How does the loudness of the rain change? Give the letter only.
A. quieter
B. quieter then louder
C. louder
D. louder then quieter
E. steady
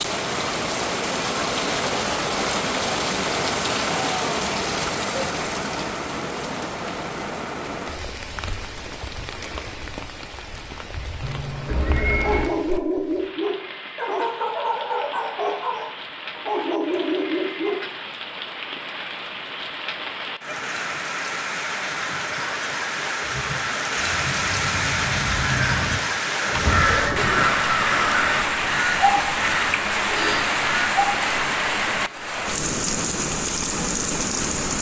B.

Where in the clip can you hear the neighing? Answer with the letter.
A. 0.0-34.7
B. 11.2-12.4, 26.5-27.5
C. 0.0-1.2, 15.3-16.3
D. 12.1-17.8
B.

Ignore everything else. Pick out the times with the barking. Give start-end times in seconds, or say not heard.
12.1-17.8.